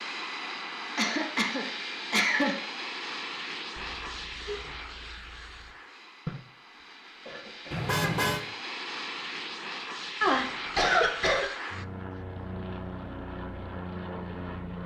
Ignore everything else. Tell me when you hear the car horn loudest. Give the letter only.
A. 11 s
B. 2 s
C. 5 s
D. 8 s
D.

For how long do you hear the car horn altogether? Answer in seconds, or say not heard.
3 s.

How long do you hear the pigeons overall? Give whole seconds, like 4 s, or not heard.
not heard.